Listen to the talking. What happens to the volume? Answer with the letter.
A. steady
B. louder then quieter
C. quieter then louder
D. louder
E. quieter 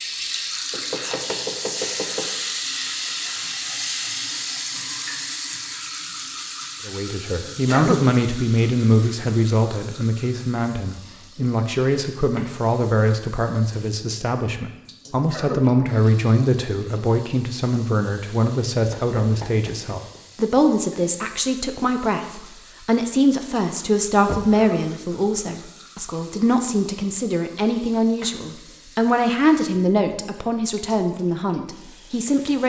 A.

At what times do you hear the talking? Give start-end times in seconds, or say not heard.
6.8-32.6.